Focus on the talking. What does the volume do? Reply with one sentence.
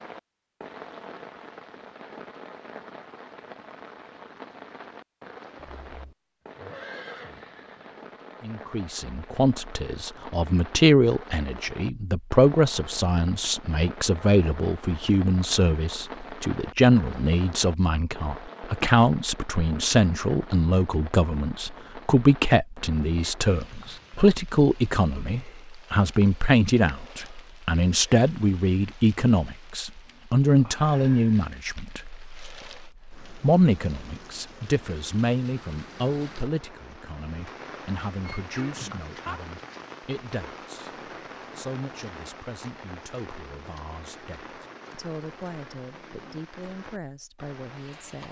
The volume of the talking goes down.